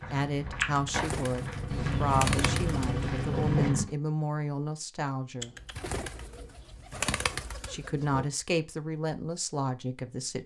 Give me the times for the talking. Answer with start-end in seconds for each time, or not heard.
0.1-5.5, 7.7-10.4.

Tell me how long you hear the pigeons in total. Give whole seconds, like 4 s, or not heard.
6 s.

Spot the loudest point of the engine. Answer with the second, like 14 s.
3 s.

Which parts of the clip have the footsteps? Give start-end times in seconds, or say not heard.
0.0-3.9.